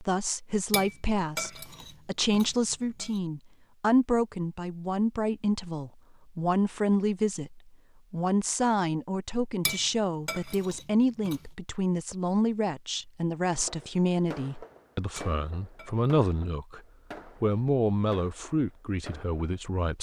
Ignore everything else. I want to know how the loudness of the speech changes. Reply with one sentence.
The volume of the speech stays about the same.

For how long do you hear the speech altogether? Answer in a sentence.
You can hear the speech for 20 seconds altogether.